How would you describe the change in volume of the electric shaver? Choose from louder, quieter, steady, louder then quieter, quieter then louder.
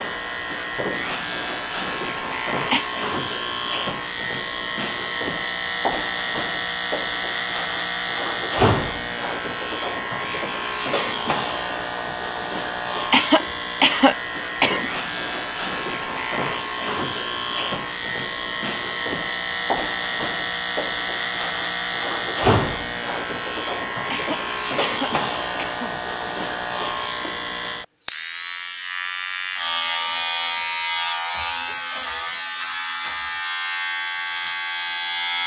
steady.